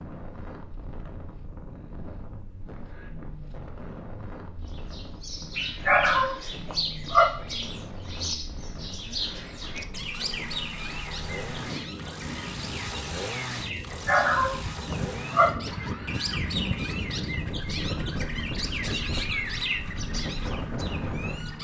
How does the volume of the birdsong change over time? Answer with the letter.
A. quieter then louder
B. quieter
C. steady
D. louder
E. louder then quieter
A.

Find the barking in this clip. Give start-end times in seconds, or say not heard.
5.8-7.2, 14.1-15.5.